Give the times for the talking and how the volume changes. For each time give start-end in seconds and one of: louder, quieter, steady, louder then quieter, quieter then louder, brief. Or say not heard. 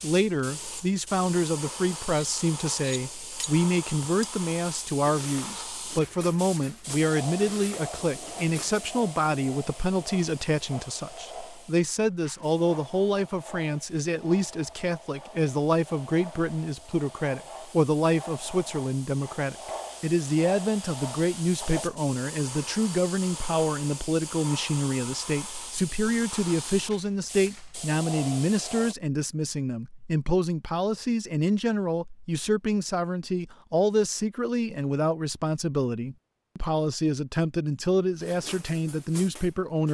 0.0-39.9 steady.